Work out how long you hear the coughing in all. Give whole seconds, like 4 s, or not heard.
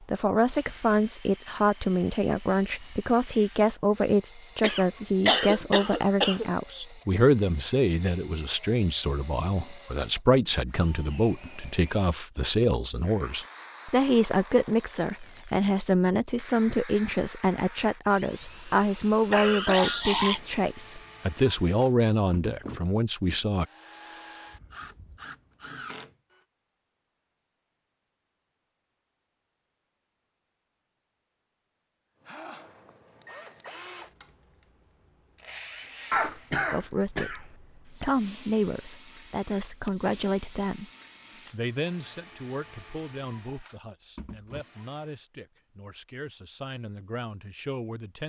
4 s.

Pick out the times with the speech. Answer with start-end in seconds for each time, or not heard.
0.1-23.6, 36.7-40.9, 41.5-48.2.